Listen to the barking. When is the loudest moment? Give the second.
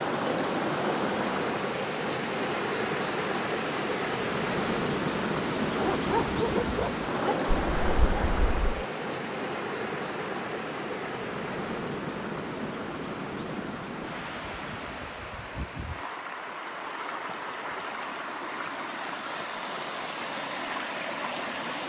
6 s.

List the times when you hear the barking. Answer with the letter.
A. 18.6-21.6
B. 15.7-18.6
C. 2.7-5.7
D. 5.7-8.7
D.